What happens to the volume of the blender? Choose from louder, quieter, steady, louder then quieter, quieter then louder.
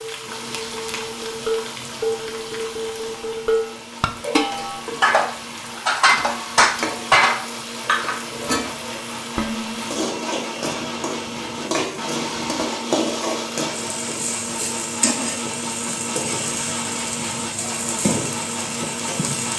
louder.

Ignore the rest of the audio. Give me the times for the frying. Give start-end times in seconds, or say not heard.
0.0-19.5.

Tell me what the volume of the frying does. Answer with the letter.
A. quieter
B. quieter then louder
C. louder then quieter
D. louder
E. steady
D.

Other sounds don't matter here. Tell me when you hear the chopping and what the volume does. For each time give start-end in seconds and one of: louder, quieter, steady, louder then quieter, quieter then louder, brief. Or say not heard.
not heard.